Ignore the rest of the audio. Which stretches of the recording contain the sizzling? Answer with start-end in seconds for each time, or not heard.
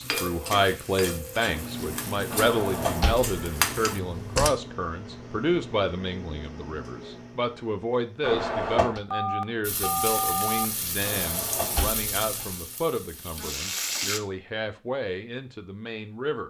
0.0-4.5, 9.6-14.2.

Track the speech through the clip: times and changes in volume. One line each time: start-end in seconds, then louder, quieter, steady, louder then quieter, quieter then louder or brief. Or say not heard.
0.0-16.4 quieter.